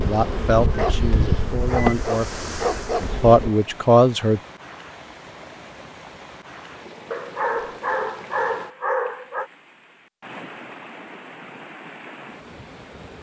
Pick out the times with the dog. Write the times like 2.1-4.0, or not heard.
0.8-3.0, 7.1-9.5.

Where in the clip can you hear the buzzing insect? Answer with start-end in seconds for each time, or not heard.
0.0-3.5.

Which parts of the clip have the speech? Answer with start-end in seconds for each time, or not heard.
0.0-4.4.